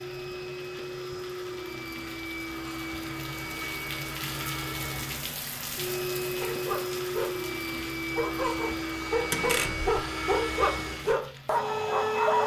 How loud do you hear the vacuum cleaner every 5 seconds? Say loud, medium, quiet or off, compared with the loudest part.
medium, loud, loud.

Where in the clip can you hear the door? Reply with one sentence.
The door can be heard from 9.3 to 9.9 s.